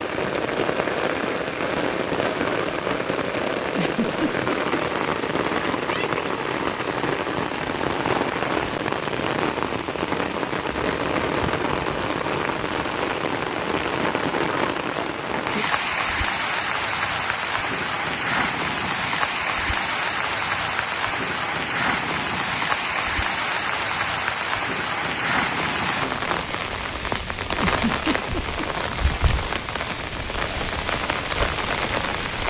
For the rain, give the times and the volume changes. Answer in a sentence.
You can hear the rain from 0.0 to 32.4 s, at a steady volume.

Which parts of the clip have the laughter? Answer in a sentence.
You can hear the laughter from 3.8 to 4.8 s and from 27.6 to 28.6 s.